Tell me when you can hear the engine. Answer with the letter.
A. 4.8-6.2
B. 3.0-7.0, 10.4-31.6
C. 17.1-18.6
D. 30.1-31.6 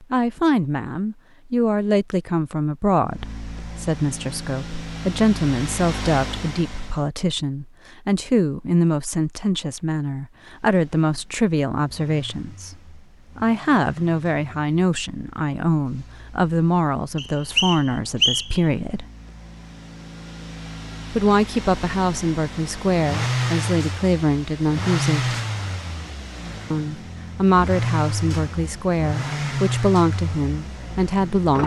B.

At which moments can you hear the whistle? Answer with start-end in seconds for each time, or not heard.
17.1-18.6.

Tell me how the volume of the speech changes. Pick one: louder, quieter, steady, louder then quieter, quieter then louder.
steady.